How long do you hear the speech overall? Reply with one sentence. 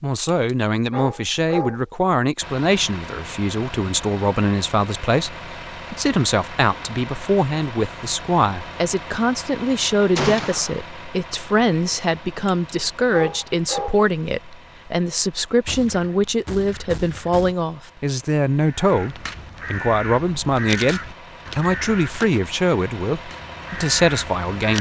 You can hear the speech for 25 seconds altogether.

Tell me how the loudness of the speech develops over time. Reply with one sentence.
The volume of the speech stays about the same.